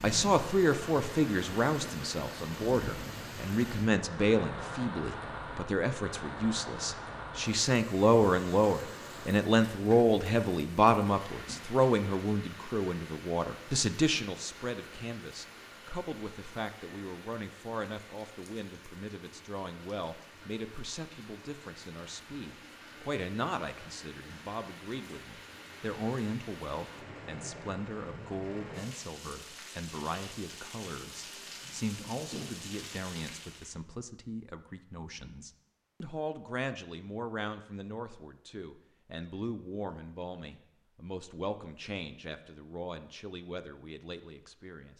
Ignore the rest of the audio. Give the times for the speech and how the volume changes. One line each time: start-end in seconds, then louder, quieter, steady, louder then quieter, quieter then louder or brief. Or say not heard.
0.0-44.9 quieter.